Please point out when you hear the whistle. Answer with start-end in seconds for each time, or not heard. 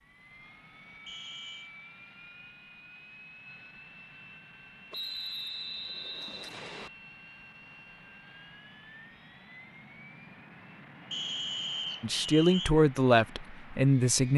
1.1-1.7, 4.9-6.9, 11.1-12.7.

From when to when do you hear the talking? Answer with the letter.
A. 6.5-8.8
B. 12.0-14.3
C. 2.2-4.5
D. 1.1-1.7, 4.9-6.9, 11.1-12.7
B.